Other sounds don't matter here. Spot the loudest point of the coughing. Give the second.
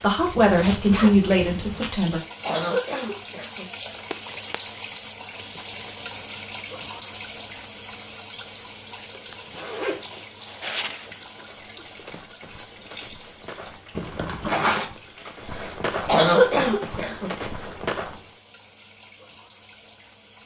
16 s.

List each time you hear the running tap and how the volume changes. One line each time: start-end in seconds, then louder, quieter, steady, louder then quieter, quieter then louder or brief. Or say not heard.
0.0-20.4 quieter.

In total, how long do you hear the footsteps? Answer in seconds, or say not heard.
7 s.